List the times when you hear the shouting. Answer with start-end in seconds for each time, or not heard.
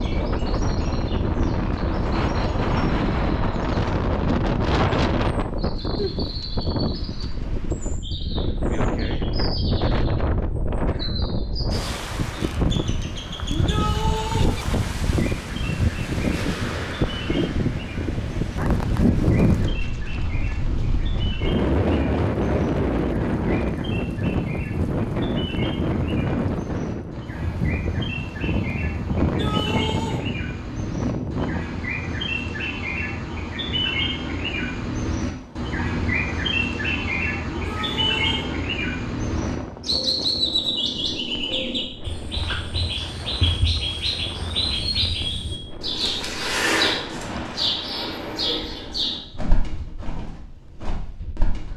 13.4-14.6, 29.2-30.2, 37.5-38.5.